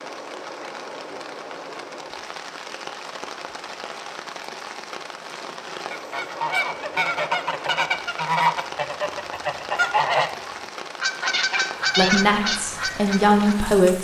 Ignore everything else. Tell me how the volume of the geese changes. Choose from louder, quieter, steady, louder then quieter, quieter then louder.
steady.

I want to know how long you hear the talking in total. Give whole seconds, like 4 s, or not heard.
2 s.